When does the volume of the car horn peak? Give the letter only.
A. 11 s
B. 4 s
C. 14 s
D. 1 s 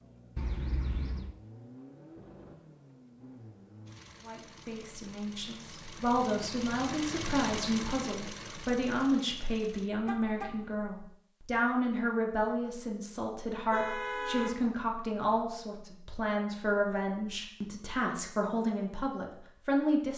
C.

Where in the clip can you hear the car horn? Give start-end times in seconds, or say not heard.
0.3-1.4, 10.1-10.7, 13.7-14.6.